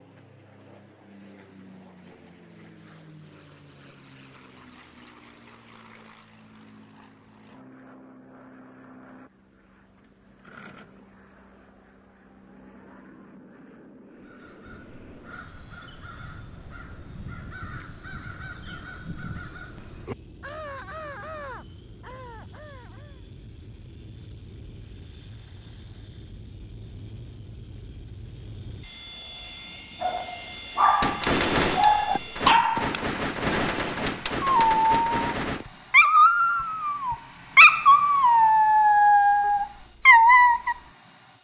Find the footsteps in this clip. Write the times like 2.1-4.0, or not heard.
not heard.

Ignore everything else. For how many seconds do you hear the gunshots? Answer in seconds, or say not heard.
5 s.